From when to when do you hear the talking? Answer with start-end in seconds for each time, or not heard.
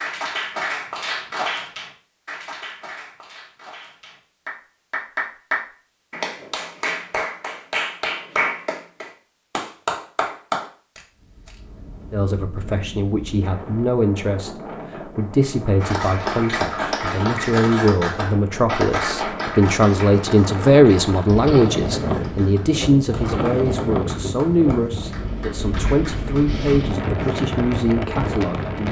12.1-28.8.